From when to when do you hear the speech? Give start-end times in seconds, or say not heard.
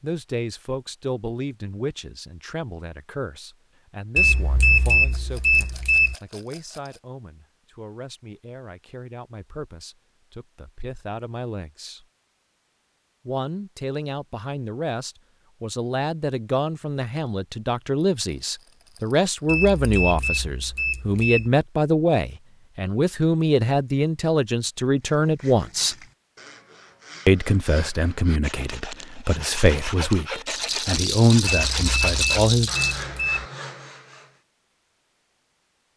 0.0-12.1, 13.2-25.9, 27.2-32.7.